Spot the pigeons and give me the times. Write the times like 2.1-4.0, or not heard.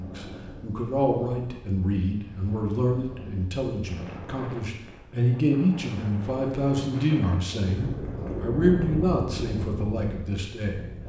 7.5-9.2.